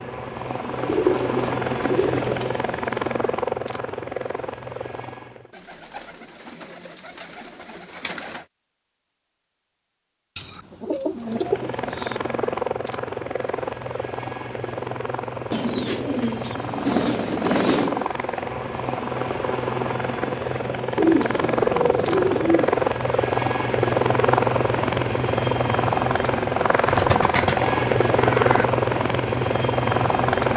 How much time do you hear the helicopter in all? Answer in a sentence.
You can hear the helicopter for 25 seconds altogether.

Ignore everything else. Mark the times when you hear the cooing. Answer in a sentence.
The cooing can be heard from 0.7 to 2.6 s, from 5.5 to 8.4 s, from 10.3 to 12.2 s, from 15.5 to 18.1 s, from 20.9 to 22.8 s and from 26.9 to 28.6 s.